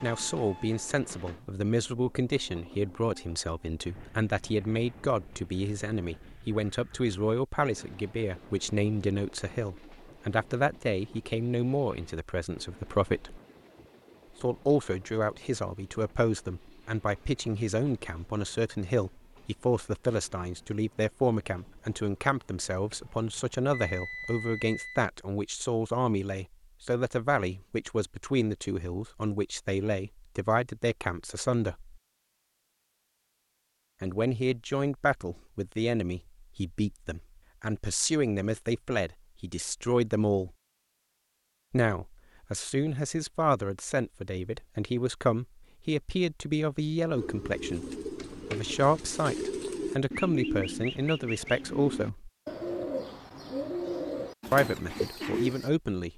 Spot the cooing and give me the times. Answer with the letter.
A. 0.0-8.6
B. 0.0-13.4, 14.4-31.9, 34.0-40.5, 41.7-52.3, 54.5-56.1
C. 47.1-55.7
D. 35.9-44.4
C.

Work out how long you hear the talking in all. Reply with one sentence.
You can hear the talking for 50 seconds altogether.